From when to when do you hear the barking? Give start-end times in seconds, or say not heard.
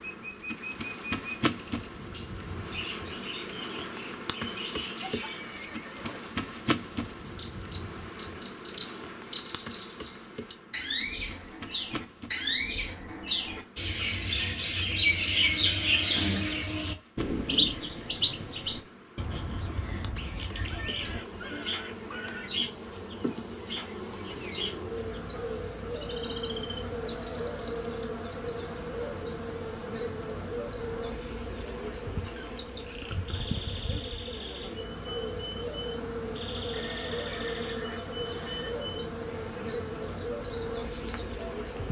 not heard.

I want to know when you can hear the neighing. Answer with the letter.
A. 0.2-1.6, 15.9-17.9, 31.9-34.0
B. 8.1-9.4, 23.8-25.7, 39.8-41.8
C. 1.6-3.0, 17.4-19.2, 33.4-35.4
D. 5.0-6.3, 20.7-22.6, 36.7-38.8
D.